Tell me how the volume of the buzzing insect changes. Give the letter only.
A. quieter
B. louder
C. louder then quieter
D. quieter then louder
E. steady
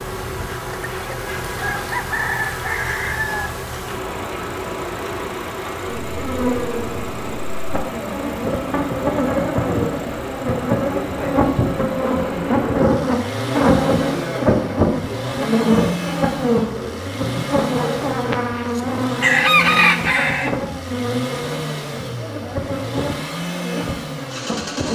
C.